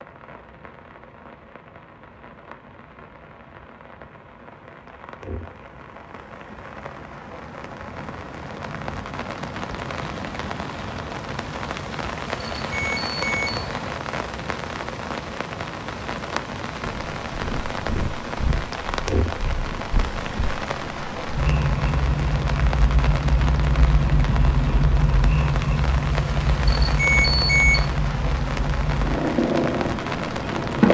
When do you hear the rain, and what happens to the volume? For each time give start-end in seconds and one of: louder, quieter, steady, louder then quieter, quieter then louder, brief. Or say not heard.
0.0-30.8 louder.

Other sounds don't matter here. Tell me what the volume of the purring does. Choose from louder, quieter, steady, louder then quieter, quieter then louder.
louder.